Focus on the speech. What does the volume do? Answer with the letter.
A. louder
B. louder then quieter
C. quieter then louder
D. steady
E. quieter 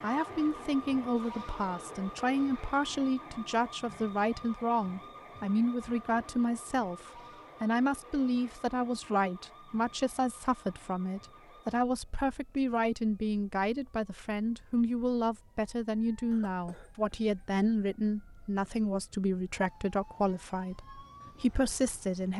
D.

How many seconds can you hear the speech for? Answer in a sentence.
You can hear the speech for 22 seconds altogether.